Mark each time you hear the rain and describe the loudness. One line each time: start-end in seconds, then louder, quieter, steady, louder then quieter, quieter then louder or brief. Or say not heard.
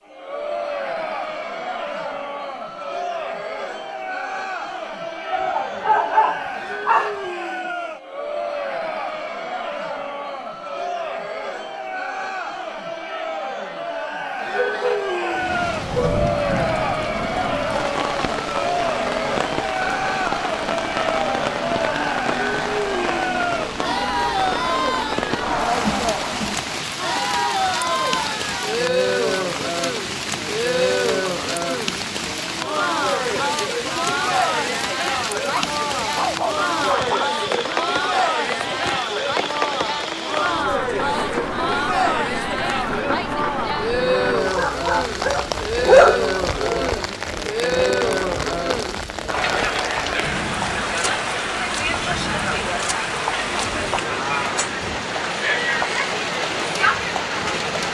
15.3-57.8 steady.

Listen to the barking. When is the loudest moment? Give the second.
46 s.